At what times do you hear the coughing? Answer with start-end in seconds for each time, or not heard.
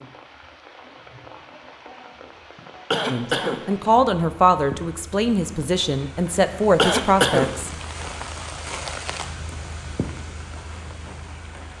2.9-3.9, 6.8-7.8.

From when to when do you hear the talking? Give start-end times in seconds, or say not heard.
3.1-7.7.